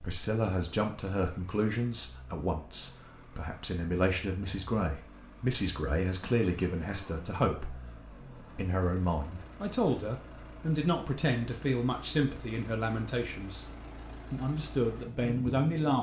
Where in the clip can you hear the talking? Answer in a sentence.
The talking can be heard from 0.0 to 7.8 s, from 8.6 to 13.7 s and from 14.3 to 15.9 s.